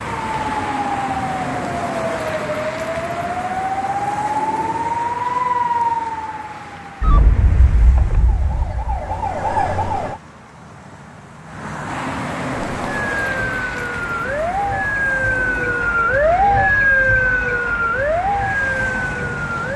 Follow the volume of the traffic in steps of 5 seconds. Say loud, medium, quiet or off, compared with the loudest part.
loud, medium, loud, medium.